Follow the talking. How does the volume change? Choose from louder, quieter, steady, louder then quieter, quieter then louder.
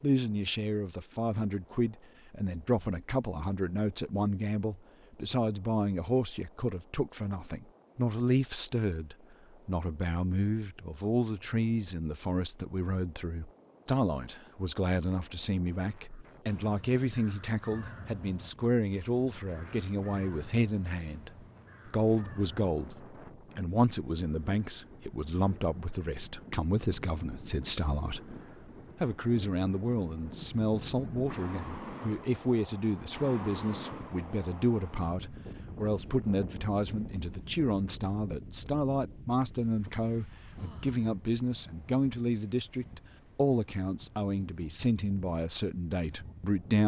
steady.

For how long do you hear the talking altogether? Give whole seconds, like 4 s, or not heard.
46 s.